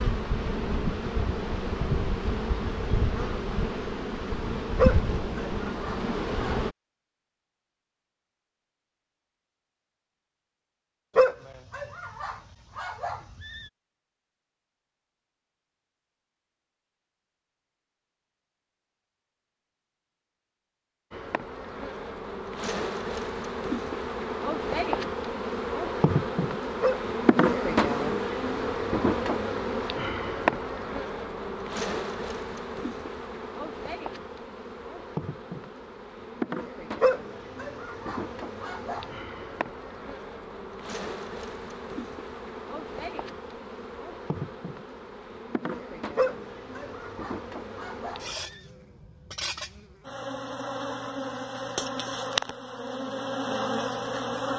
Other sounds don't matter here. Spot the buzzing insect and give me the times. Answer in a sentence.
You can hear the buzzing insect from 0.0 to 6.8 s and from 21.1 to 54.5 s.